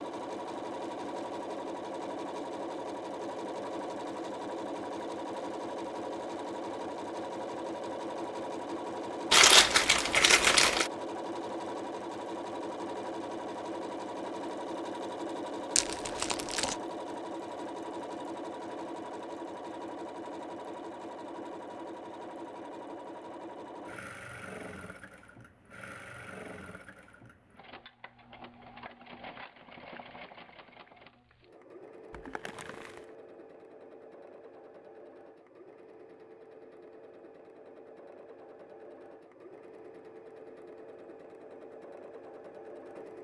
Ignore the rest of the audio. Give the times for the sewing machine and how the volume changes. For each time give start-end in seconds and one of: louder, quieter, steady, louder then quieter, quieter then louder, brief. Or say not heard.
0.0-43.1 quieter.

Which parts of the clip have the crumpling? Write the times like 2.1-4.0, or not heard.
9.3-10.9, 15.8-16.8, 32.1-33.0.